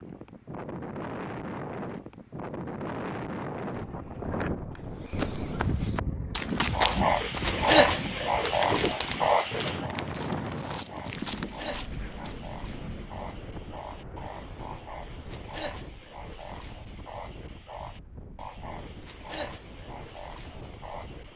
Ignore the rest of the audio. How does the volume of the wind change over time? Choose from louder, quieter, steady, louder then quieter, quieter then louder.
quieter.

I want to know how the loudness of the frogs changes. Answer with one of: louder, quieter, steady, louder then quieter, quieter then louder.
quieter.